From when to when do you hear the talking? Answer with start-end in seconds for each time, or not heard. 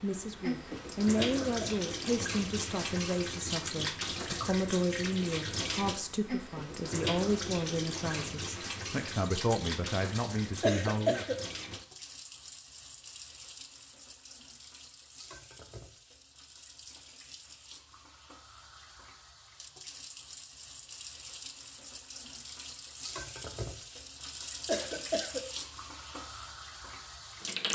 0.0-11.2.